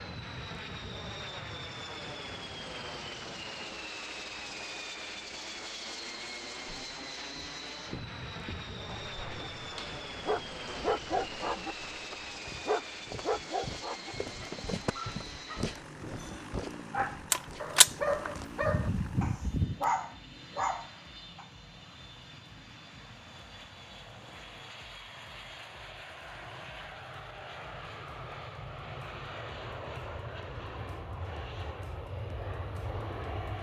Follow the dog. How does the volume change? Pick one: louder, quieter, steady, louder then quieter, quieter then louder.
quieter then louder.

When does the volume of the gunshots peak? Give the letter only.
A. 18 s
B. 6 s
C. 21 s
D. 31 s
A.